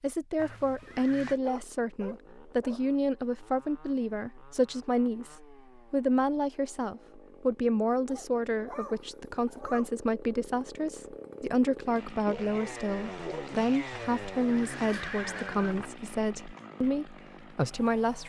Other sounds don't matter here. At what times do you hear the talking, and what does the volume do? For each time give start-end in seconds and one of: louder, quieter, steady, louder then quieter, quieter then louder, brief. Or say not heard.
0.0-18.2 steady.